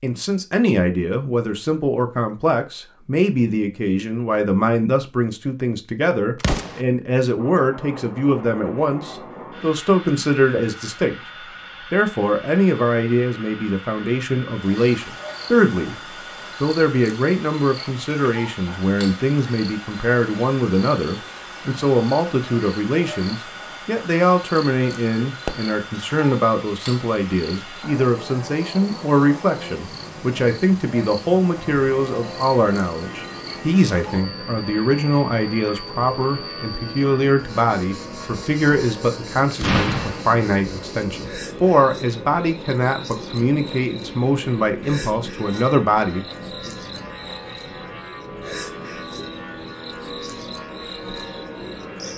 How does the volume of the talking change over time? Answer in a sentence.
The volume of the talking stays about the same.